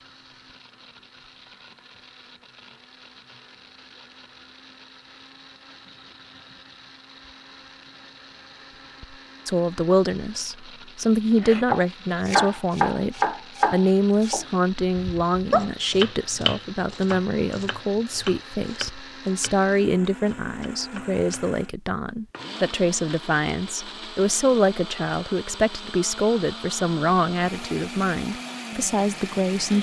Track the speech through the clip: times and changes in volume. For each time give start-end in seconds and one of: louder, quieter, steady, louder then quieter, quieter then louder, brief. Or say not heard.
9.4-29.7 steady.